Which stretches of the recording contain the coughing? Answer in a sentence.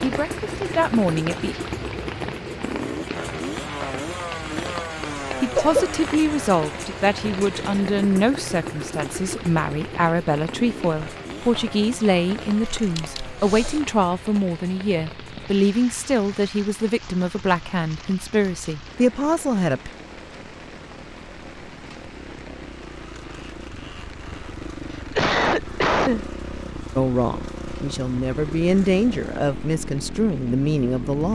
You can hear the coughing from 5.0 to 5.8 s, from 12.6 to 13.8 s and from 24.9 to 26.2 s.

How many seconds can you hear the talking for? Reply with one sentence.
You can hear the talking for 20 seconds altogether.